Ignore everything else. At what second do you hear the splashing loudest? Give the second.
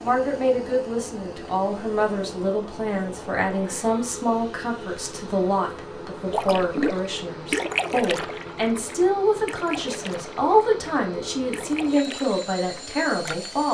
8 s.